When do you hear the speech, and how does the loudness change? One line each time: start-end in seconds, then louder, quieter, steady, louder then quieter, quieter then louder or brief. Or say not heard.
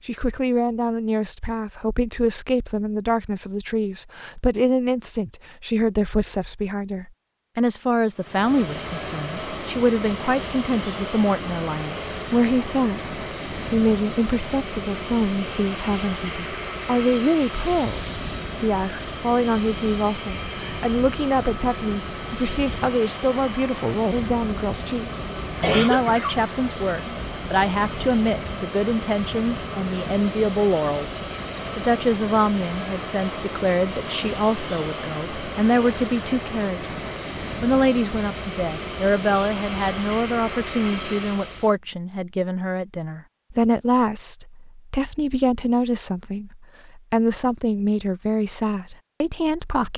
0.1-49.9 steady.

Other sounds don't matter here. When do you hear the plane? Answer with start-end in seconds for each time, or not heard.
8.2-41.8.